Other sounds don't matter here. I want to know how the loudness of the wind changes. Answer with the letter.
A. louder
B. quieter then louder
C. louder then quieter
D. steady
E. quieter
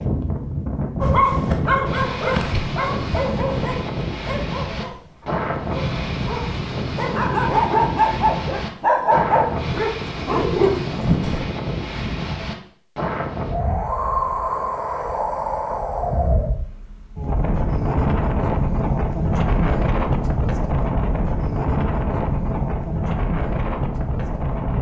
D.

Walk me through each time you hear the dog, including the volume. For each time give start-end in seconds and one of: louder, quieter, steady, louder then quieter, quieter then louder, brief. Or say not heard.
1.0-11.4 quieter then louder.